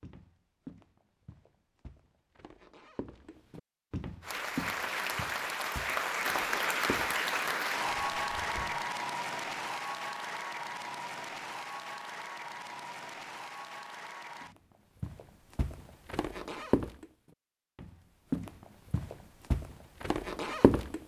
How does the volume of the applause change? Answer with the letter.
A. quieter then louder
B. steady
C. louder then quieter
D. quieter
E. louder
D.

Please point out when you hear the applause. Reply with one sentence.
You can hear the applause from 4.2 to 14.6 s.